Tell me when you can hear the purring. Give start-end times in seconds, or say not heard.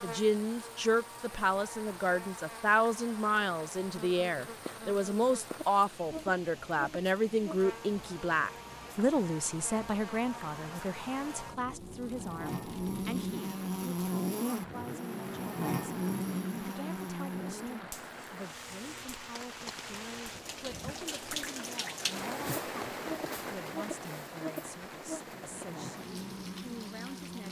not heard.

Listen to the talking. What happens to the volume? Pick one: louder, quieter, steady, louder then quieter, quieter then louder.
quieter.